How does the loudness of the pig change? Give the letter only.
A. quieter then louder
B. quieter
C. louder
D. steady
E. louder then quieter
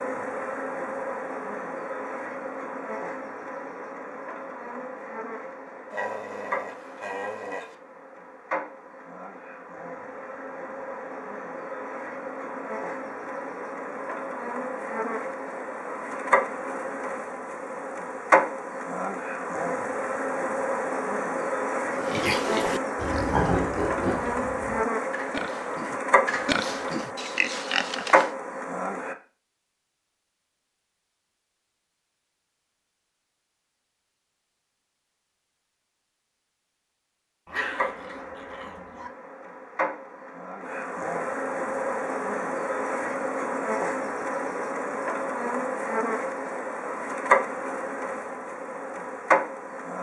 A.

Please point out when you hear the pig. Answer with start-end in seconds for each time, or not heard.
21.9-28.3.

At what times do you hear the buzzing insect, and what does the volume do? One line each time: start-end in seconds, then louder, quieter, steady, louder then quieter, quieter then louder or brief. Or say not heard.
0.0-29.1 louder
37.5-49.9 louder.